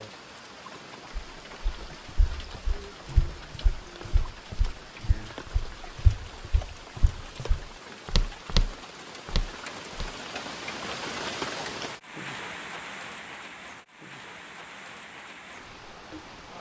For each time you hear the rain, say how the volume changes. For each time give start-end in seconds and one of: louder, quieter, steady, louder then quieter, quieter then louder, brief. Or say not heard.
0.0-16.5 louder then quieter.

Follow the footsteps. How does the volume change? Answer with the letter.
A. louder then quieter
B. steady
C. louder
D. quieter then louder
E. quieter
C.